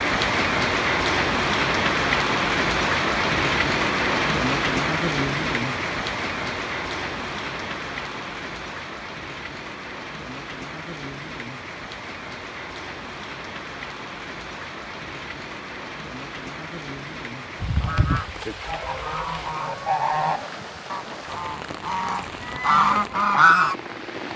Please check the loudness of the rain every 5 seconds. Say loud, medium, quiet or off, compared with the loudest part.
loud, medium, quiet, quiet, quiet.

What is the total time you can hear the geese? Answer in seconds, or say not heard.
6 s.